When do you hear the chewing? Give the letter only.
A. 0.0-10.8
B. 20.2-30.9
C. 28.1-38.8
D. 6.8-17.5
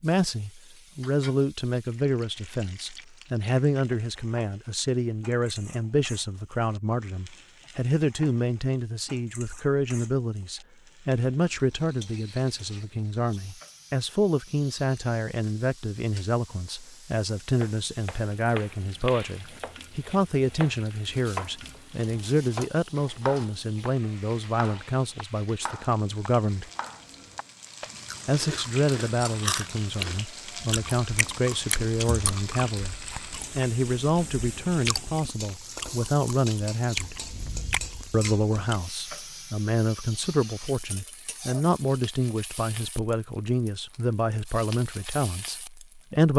C.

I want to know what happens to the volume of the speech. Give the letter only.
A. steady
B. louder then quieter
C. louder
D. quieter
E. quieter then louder
A.